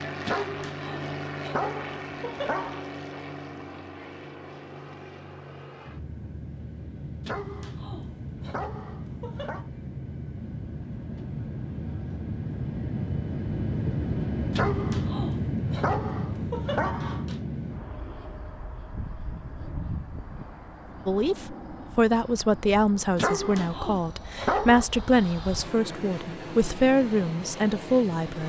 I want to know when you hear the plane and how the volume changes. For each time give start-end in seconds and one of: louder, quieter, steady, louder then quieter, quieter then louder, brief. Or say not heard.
0.0-28.4 louder then quieter.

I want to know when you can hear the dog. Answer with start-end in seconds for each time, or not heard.
0.2-2.8, 7.2-9.7, 14.6-17.4, 23.1-24.9.